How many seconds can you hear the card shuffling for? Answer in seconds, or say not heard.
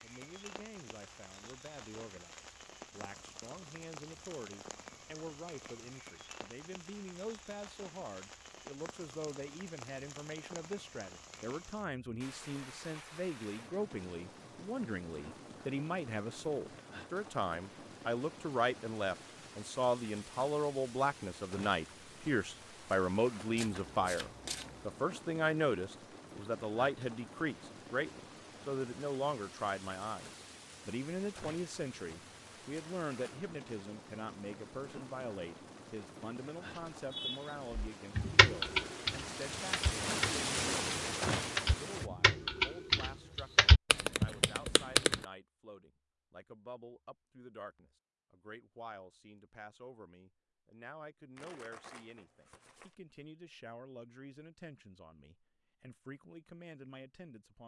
3 s.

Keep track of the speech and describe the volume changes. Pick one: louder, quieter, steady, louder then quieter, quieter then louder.
louder then quieter.